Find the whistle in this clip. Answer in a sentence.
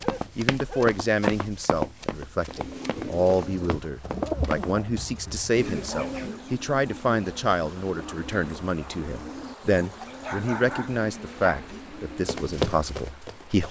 The whistle can't be heard in this clip.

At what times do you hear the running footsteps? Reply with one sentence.
The running footsteps can be heard from 0.0 to 4.8 s and from 12.2 to 13.6 s.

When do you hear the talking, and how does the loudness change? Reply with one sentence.
The talking can be heard from 0.3 to 13.6 s, at a steady volume.